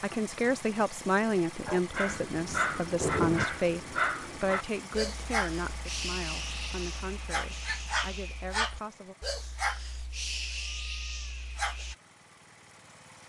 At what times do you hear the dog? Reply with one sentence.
The dog can be heard from 1.6 to 11.9 s.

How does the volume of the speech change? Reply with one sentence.
The loudness of the speech goes down.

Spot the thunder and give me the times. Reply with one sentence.
The thunder can be heard from 2.0 to 3.5 s.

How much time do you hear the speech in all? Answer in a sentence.
You can hear the speech for 9 seconds altogether.